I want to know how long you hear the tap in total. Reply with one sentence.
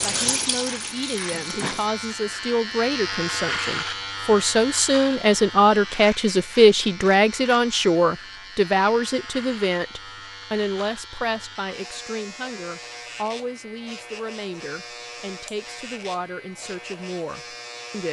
You can hear the tap for 2 seconds altogether.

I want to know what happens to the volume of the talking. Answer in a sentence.
The loudness of the talking goes up, then down.